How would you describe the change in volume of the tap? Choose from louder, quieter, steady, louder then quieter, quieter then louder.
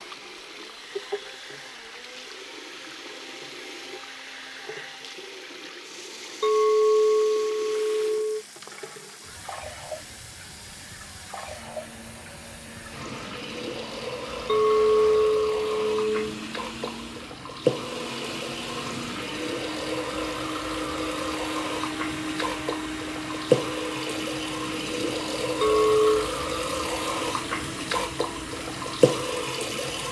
louder.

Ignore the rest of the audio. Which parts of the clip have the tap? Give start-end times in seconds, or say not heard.
0.0-30.0.